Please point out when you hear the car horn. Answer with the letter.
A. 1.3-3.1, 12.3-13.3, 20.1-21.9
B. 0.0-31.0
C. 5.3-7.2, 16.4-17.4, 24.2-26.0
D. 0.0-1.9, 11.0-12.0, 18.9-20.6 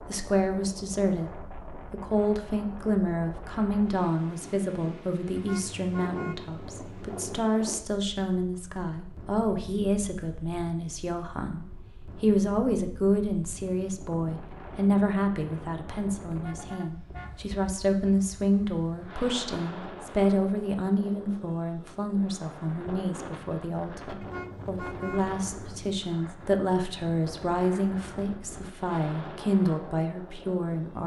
C.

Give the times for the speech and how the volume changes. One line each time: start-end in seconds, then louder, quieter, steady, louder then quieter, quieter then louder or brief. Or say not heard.
0.0-31.0 steady.